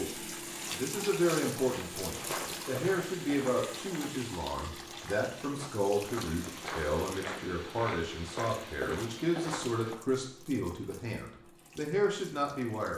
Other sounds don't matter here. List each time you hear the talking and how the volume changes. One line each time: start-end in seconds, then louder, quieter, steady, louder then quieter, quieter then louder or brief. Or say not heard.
0.0-12.9 steady.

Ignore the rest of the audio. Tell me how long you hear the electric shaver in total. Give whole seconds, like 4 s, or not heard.
not heard.